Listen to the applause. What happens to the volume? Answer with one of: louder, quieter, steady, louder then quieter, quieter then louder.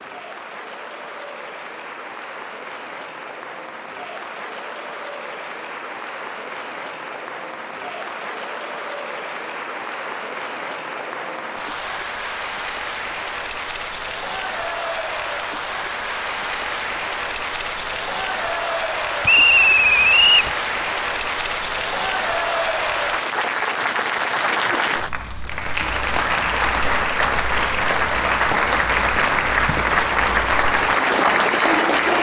louder.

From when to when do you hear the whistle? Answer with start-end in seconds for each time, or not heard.
19.2-20.5.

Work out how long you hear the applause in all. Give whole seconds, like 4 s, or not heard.
32 s.